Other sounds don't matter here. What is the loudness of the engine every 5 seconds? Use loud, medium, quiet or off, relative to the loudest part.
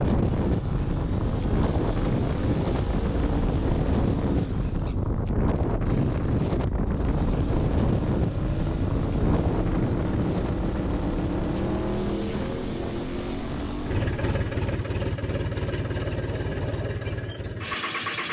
medium, loud, loud, loud.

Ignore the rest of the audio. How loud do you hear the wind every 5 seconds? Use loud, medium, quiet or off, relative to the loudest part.
loud, loud, medium, off.